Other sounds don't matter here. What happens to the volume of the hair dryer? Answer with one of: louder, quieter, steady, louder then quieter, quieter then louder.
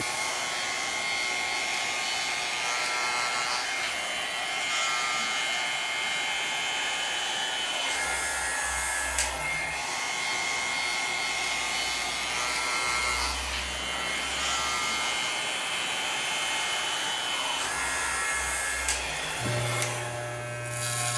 steady.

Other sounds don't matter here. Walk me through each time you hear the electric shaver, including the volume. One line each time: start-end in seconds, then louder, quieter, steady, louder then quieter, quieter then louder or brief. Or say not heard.
0.0-21.1 steady.